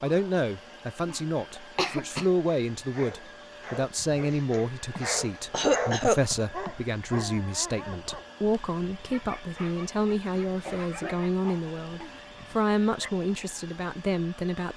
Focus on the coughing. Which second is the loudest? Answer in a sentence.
The volume of the coughing peaks at 6 seconds.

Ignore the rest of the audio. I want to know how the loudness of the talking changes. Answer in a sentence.
The volume of the talking stays about the same.